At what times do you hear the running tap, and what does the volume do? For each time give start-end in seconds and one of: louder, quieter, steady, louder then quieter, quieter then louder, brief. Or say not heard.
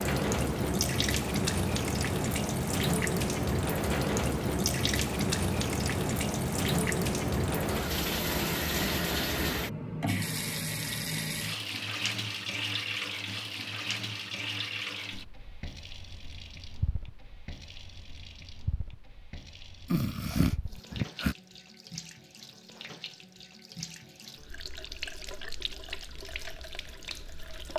0.0-27.7 quieter.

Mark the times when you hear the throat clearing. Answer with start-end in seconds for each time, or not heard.
19.9-21.4.